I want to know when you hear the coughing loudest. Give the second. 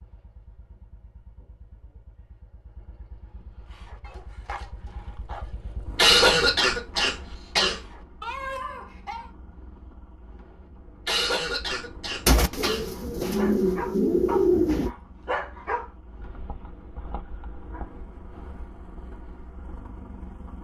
6 s.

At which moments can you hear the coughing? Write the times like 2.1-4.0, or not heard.
6.0-7.8, 11.1-12.8.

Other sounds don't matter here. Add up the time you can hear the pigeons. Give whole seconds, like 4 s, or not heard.
3 s.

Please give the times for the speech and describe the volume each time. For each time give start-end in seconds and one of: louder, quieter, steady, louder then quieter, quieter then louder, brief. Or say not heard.
not heard.